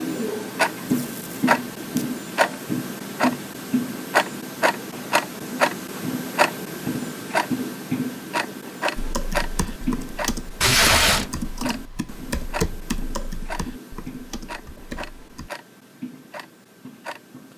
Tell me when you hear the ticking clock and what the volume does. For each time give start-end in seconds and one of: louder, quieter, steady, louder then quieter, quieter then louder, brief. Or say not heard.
0.0-17.5 quieter.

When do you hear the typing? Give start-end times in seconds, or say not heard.
8.9-15.5.